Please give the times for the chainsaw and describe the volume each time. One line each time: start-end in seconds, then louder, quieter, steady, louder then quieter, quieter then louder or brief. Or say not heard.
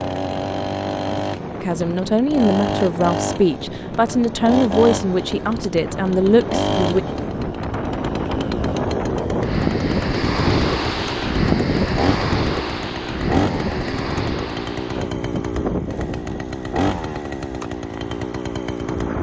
0.0-19.1 steady.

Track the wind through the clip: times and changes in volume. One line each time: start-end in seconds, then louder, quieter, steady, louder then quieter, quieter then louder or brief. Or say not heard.
0.0-19.1 louder then quieter.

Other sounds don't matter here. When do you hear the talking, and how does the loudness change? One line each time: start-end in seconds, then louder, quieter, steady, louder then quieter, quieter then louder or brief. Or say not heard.
1.6-7.0 steady.